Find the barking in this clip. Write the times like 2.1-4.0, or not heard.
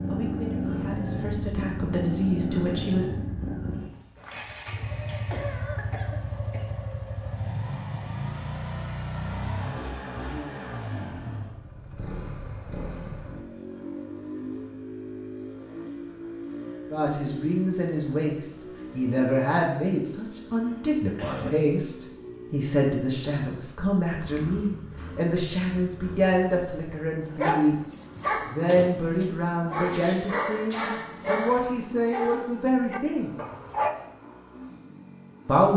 27.3-33.9.